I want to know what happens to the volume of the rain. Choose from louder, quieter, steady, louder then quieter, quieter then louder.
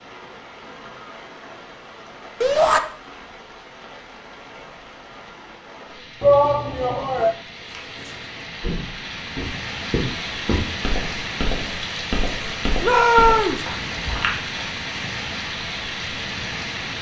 louder.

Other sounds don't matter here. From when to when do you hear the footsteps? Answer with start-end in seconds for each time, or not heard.
7.5-14.7.